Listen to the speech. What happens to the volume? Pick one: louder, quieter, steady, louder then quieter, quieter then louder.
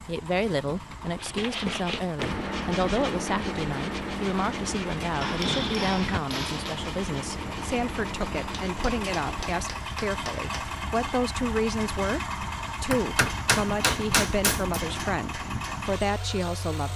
steady.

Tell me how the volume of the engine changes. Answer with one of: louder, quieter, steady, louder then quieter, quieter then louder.
louder.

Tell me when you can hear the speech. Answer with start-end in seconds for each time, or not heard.
0.1-16.9.